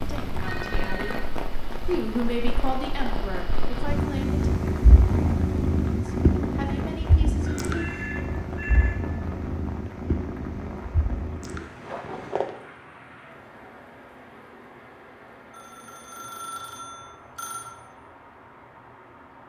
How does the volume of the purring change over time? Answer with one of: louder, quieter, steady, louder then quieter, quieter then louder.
louder then quieter.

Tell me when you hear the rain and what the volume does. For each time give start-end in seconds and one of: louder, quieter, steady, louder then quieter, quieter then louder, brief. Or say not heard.
0.0-19.4 quieter.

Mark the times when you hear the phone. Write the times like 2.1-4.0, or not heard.
0.4-1.3, 7.5-9.0, 15.5-17.7.